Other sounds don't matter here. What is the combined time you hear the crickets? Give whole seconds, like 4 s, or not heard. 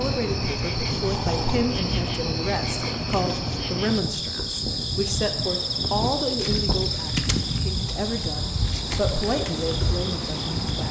11 s.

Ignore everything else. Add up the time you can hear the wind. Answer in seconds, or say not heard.
11 s.